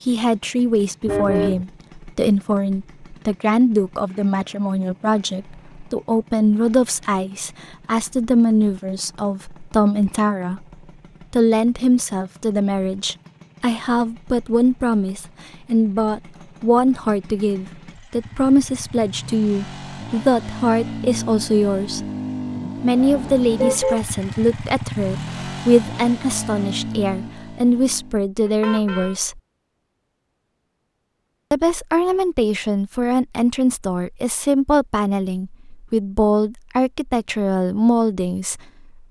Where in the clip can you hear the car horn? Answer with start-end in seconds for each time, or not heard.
1.1-1.6, 22.9-24.0, 28.4-29.1.